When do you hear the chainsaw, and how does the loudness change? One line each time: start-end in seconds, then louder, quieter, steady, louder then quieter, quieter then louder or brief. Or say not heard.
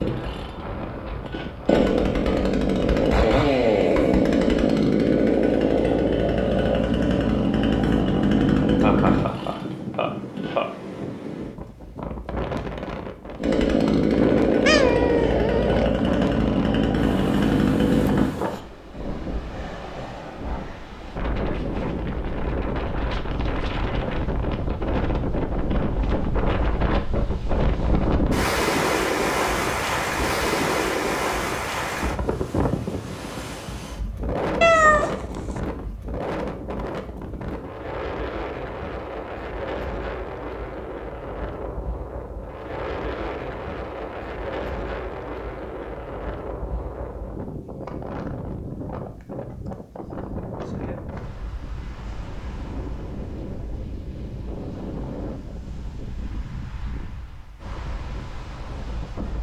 0.0-10.6 steady
13.4-18.4 steady.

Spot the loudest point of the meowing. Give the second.
35 s.